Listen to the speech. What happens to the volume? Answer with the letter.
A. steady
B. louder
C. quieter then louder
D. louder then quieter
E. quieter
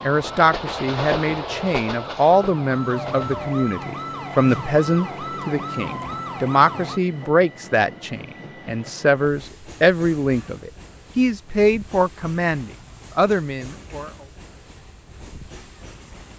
A.